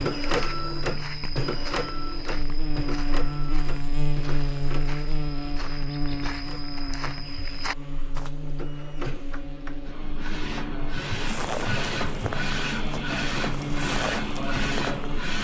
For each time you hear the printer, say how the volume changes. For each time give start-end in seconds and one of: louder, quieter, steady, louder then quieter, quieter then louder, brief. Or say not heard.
0.0-15.3 quieter then louder.